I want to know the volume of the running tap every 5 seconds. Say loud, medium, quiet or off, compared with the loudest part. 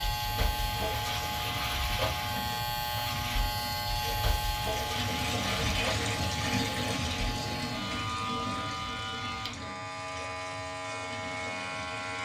medium, loud, medium.